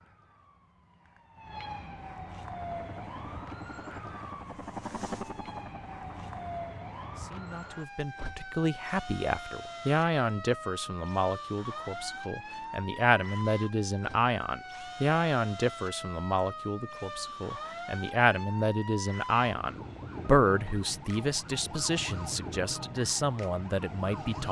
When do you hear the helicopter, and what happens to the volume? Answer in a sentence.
The helicopter can be heard from 2.4 to 6.6 s, getting louder then quieter.